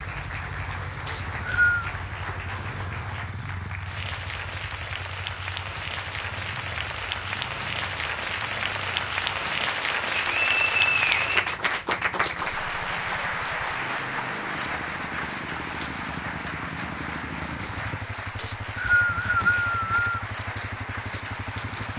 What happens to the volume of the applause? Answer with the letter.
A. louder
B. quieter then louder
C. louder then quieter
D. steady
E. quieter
C.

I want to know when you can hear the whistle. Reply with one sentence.
You can hear the whistle from 1.1 to 1.9 s, from 10.2 to 11.5 s and from 18.4 to 20.1 s.